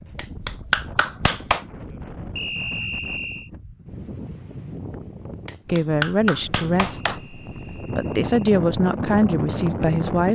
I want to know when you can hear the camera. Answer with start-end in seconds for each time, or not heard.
not heard.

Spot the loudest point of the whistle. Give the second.
3 s.